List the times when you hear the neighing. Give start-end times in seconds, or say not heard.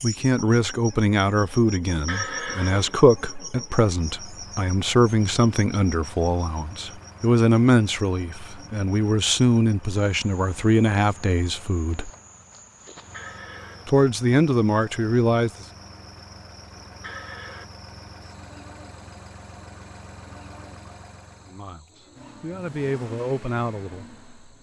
2.0-3.6, 13.1-13.9, 17.0-17.6.